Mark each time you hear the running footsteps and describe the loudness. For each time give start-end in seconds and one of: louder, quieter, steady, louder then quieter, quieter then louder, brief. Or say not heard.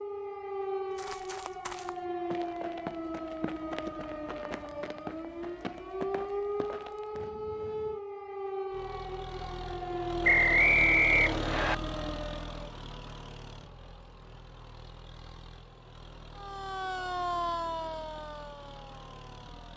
0.9-7.3 steady.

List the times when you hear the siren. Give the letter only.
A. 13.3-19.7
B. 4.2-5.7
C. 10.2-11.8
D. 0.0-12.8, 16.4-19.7
D.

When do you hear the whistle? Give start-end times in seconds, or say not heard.
10.2-11.8.